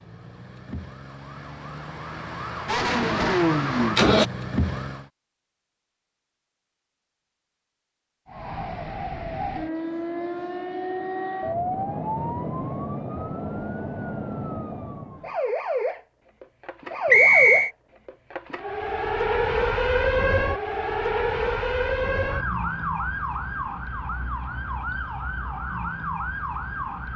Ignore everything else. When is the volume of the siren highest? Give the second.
20 s.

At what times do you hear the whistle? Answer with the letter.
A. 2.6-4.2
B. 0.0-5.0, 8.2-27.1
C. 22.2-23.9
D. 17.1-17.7
D.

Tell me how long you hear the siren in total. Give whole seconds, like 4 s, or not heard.
24 s.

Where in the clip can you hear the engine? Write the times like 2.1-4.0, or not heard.
2.6-4.2.